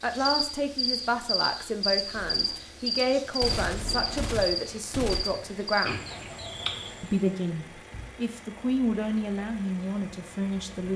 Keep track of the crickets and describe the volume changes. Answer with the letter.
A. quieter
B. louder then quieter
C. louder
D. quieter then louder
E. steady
E.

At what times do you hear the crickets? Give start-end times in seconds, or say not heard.
0.0-7.3.